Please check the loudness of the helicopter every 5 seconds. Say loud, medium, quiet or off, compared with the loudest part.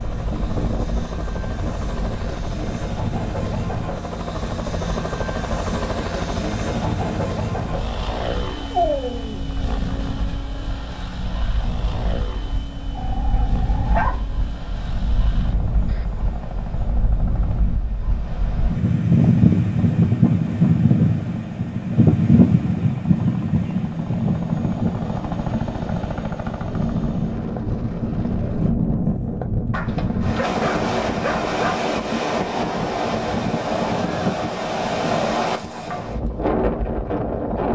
loud, loud, medium, medium, medium, loud, off, off.